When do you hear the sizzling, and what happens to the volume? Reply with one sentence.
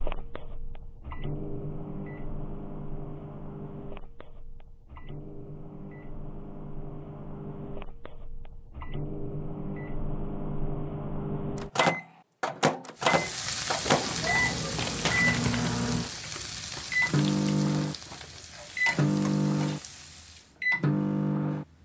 The sizzling can be heard from 12.9 to 20.6 s, getting quieter.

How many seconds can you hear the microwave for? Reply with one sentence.
You can hear the microwave for 22 seconds altogether.